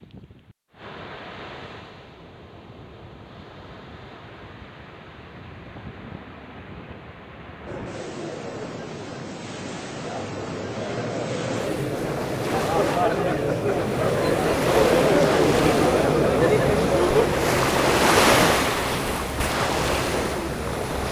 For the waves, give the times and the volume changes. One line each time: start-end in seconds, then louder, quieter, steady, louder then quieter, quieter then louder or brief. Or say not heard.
0.0-21.0 louder.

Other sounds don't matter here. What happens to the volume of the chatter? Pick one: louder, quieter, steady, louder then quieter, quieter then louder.
louder then quieter.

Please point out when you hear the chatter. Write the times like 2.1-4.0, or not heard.
7.7-21.0.